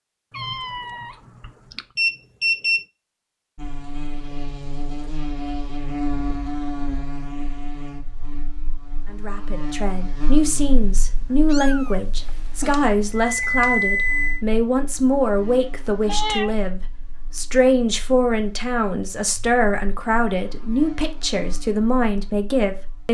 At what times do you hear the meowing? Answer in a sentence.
The meowing can be heard from 0.3 to 1.9 s, from 11.4 to 12.9 s and from 16.1 to 16.6 s.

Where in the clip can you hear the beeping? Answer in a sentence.
You can hear the beeping from 1.9 to 2.9 s and from 12.7 to 14.4 s.